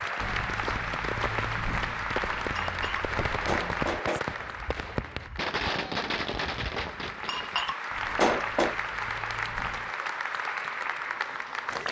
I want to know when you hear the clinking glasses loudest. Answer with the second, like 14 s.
8 s.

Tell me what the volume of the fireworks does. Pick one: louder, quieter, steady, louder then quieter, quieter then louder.
louder.